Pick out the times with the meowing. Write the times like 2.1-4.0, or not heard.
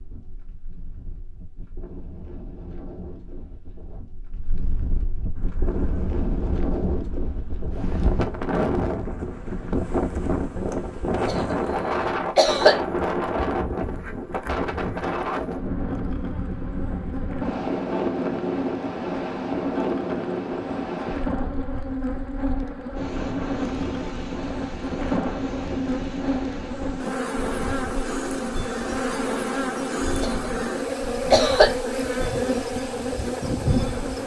not heard.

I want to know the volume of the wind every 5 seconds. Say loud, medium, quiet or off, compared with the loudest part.
quiet, loud, loud, loud, medium, medium, quiet.